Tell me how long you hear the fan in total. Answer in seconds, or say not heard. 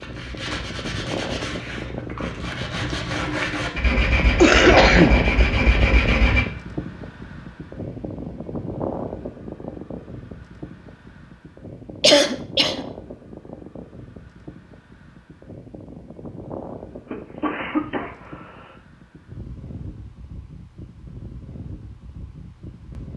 23 s.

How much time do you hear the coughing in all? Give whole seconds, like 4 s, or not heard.
3 s.